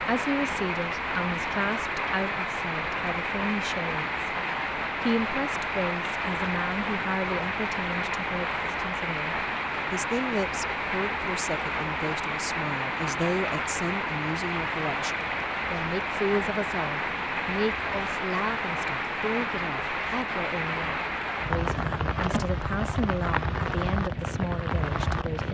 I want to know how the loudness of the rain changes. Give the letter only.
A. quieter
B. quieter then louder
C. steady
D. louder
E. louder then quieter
C.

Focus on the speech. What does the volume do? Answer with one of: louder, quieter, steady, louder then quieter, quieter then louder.
steady.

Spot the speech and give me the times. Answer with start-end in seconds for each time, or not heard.
0.0-4.1, 5.0-25.5.